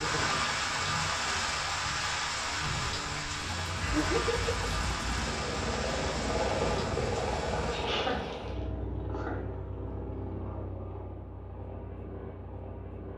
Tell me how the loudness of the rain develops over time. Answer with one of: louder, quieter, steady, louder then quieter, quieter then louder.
quieter.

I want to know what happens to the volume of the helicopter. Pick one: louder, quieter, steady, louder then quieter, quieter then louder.
louder then quieter.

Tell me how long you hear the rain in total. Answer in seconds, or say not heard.
9 s.